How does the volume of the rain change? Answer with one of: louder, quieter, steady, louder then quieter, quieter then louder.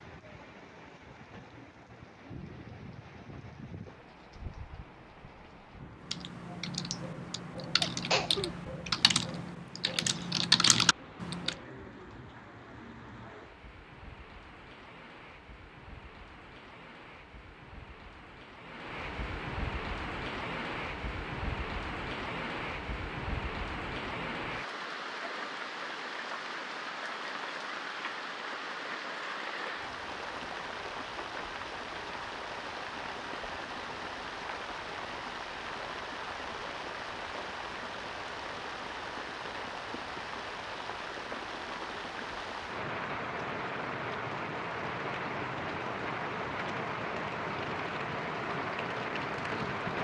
louder.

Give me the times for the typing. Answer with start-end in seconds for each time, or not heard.
6.0-11.6.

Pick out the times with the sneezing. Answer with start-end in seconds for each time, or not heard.
7.8-8.6.